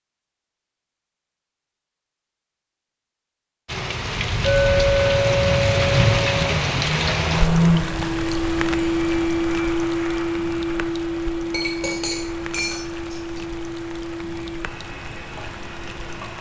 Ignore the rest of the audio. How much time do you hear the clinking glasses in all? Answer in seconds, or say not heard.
4 s.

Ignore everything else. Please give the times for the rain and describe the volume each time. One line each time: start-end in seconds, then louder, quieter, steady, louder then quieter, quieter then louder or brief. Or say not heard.
3.6-16.3 quieter.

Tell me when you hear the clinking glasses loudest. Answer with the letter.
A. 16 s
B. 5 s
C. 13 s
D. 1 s
B.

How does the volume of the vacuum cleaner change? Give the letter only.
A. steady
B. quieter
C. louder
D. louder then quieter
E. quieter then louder
B.